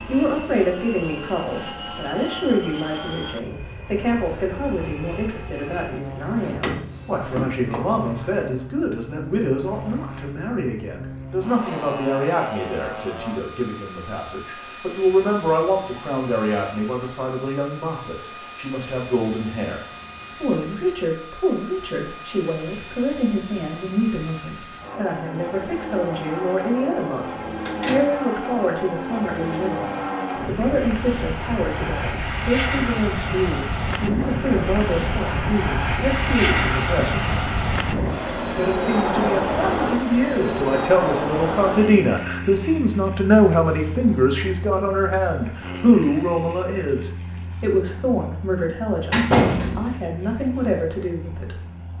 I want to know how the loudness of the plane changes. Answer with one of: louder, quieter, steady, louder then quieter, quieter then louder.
louder then quieter.